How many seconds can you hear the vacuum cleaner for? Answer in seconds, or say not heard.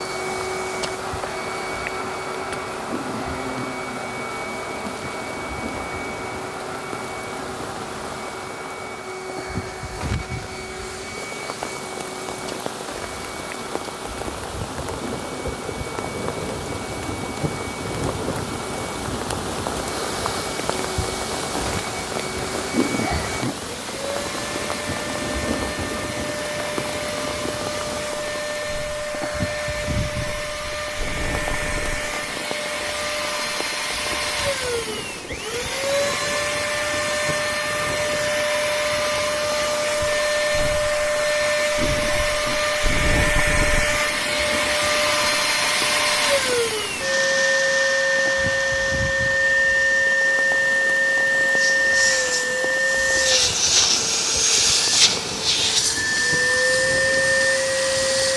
58 s.